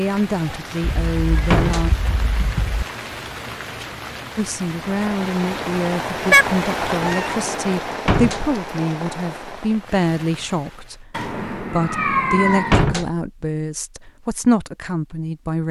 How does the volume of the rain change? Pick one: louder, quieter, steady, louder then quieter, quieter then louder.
louder then quieter.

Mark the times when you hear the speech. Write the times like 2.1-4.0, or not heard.
0.0-1.9, 4.3-15.6.